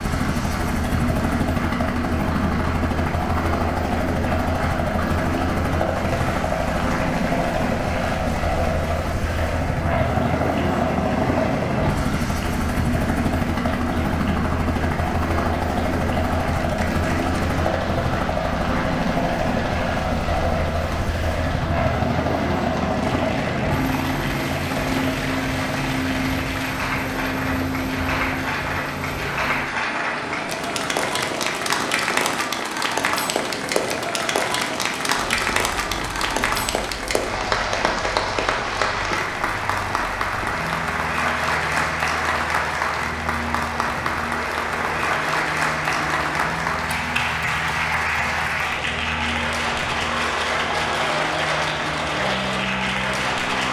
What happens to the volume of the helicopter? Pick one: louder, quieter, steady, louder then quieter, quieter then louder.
quieter.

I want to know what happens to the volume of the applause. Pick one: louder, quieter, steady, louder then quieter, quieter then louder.
louder.